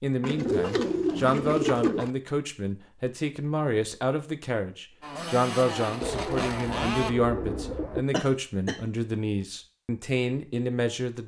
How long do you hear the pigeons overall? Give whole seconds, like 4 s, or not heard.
4 s.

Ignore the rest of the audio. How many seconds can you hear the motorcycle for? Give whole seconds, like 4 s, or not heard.
2 s.